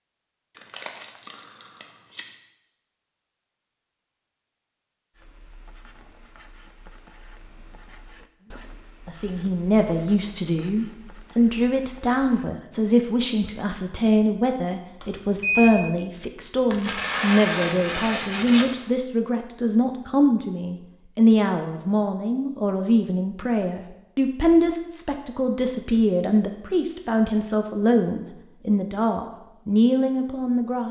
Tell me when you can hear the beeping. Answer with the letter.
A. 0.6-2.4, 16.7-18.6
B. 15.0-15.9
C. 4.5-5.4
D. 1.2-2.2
B.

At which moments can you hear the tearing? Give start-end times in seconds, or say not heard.
0.6-2.4, 16.7-18.6.